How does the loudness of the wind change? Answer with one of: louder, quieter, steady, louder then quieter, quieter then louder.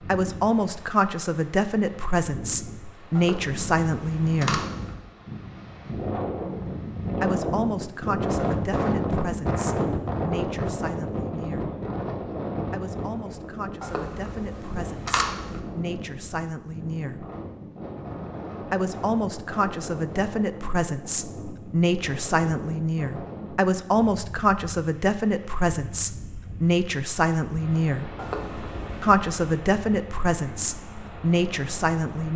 louder then quieter.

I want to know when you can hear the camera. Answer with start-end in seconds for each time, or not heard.
3.1-5.0, 13.8-15.6, 28.1-29.2.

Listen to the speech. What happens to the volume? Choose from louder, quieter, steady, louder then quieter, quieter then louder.
quieter then louder.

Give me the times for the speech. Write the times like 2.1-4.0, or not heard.
0.1-4.7, 7.2-11.8, 12.7-17.3, 18.7-28.1, 29.0-32.3.